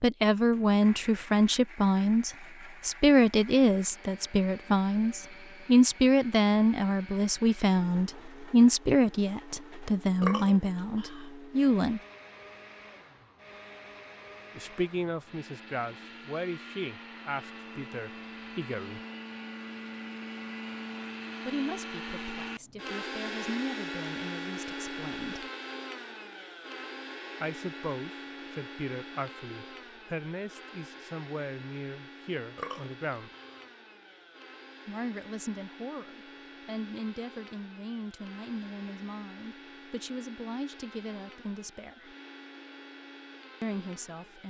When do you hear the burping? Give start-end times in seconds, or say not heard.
10.2-11.3, 32.5-33.6.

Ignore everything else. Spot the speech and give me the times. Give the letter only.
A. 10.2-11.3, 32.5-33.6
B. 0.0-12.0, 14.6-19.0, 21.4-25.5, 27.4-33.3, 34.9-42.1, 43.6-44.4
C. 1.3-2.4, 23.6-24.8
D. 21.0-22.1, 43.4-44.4
B.